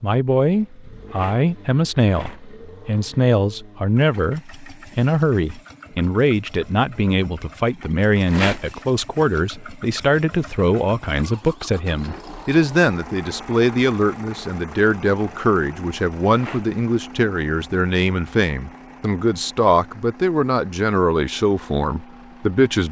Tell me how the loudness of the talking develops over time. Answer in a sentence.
The loudness of the talking stays about the same.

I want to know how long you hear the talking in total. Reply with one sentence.
The talking can be heard for 23 seconds in total.